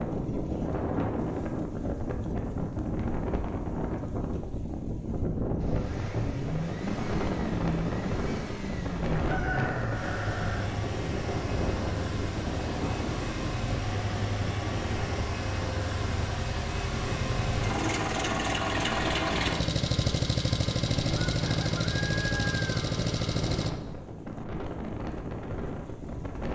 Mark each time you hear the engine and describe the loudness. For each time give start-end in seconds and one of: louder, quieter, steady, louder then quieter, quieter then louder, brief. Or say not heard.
5.5-23.7 louder.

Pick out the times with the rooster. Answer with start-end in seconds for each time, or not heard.
9.2-10.8, 21.4-22.8.